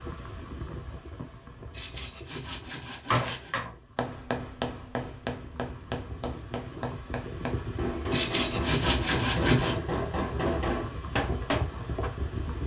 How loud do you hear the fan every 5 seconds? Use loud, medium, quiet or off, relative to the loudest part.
medium, loud, loud.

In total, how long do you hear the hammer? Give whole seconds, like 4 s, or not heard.
9 s.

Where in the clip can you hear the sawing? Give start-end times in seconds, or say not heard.
1.7-3.5, 8.1-9.8.